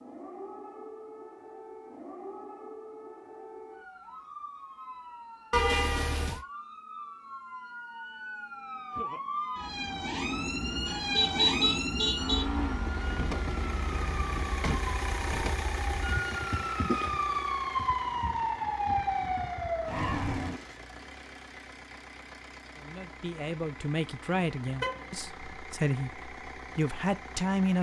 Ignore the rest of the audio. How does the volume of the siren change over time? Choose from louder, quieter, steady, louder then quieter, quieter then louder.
louder.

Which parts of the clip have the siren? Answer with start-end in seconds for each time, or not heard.
0.0-20.6.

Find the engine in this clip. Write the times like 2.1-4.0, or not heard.
12.8-27.7.